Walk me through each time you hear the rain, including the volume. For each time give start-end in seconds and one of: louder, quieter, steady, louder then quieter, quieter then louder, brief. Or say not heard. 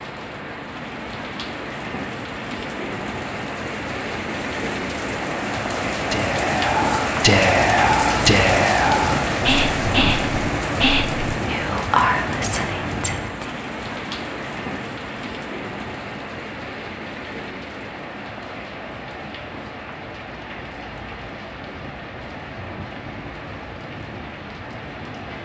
0.0-25.4 louder then quieter.